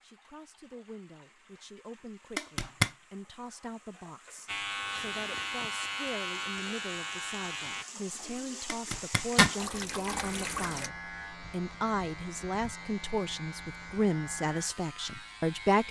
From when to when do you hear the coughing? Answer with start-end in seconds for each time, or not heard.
not heard.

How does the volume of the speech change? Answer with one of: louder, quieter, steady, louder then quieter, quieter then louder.
louder.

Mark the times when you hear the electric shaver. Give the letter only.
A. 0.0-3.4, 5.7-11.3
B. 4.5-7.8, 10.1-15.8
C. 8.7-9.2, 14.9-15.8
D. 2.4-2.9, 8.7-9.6
B.